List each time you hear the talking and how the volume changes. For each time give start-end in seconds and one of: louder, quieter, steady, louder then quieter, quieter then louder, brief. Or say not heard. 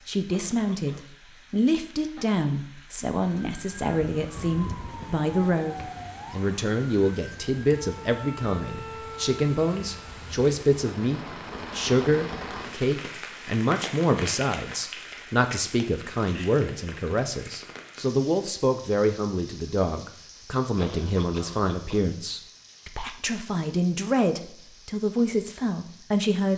0.1-26.5 steady.